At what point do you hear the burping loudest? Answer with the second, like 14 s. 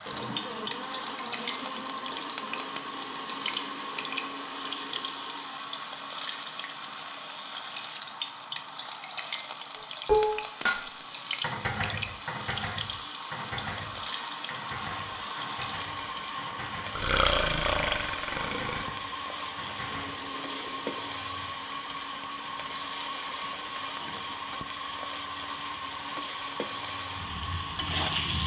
17 s.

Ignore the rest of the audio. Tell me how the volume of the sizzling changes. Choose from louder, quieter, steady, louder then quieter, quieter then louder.
steady.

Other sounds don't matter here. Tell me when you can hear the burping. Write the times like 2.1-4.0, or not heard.
16.9-18.9.